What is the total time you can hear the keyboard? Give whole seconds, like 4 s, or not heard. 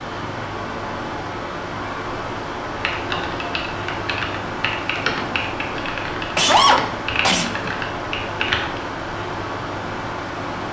6 s.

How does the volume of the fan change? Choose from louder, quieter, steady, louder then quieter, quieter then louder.
steady.